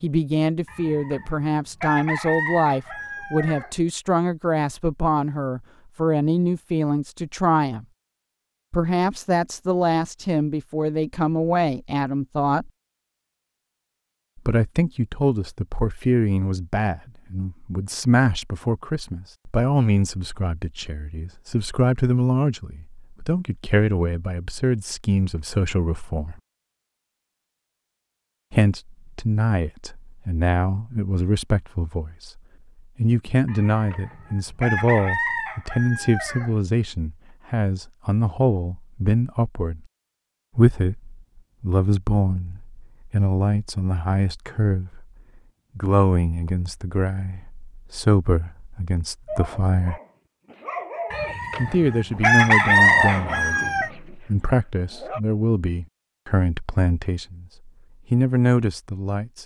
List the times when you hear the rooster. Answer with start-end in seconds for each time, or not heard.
0.7-3.8, 33.5-36.5, 51.1-53.9.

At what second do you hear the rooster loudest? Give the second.
53 s.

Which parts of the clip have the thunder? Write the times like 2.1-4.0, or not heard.
not heard.